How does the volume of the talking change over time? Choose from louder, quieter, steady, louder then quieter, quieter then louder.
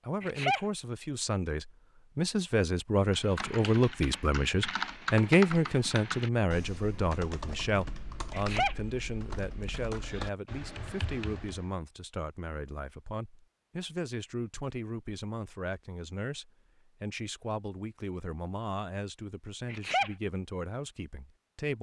quieter.